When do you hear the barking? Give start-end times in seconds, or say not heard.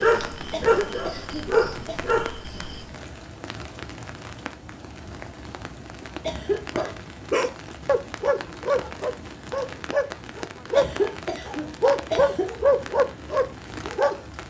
0.0-2.9, 6.8-14.2.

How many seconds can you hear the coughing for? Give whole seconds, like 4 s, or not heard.
4 s.